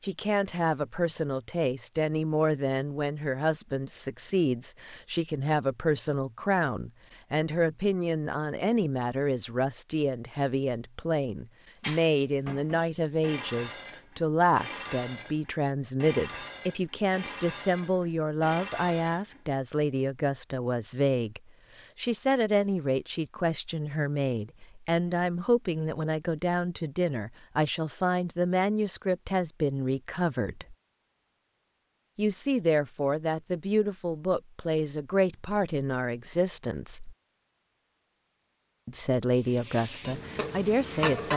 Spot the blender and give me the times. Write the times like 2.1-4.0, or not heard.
not heard.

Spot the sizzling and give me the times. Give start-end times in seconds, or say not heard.
39.4-41.3.